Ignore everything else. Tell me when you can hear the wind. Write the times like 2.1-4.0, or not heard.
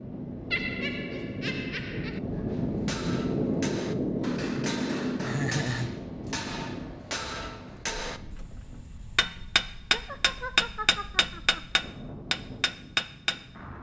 0.0-13.7.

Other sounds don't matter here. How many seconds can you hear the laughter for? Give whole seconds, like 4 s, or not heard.
4 s.